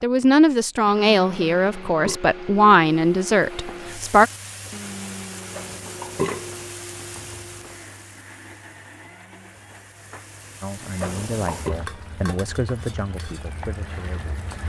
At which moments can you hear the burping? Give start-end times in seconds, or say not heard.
1.4-2.2, 5.5-6.7, 10.9-11.8.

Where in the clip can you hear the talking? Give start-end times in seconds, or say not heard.
0.0-4.3, 10.6-14.3.